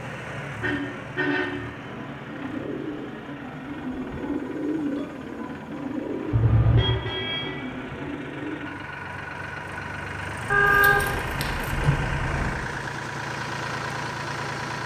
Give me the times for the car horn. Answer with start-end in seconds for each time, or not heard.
0.6-1.6, 6.3-7.6, 10.5-12.5.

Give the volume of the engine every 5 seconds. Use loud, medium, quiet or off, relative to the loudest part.
medium, medium, loud.